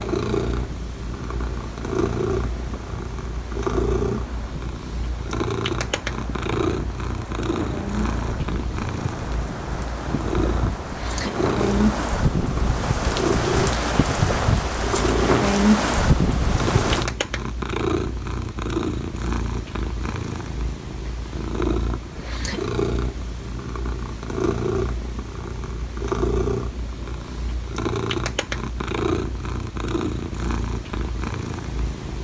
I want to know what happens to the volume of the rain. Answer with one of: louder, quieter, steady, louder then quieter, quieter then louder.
louder.